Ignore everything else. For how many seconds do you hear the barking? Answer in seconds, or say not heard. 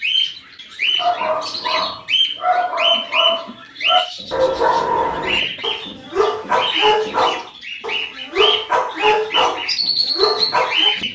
10 s.